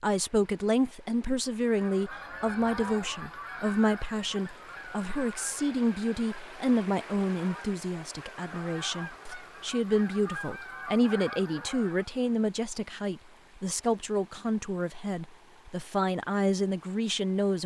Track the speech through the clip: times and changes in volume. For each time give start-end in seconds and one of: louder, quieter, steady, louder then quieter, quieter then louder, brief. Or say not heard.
0.0-17.6 steady.